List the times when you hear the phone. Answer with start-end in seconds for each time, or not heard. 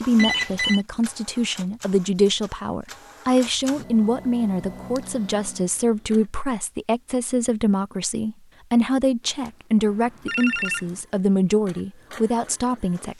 0.1-0.8, 9.2-11.0.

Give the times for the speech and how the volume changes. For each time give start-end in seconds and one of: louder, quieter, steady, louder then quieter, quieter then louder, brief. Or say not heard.
0.0-13.1 steady.